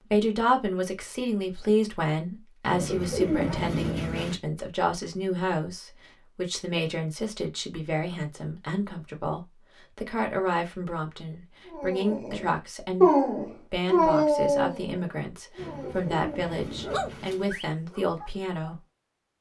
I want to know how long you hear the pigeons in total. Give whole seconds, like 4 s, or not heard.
4 s.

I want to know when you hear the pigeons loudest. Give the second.
3 s.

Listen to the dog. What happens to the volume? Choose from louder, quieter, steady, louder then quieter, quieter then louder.
quieter then louder.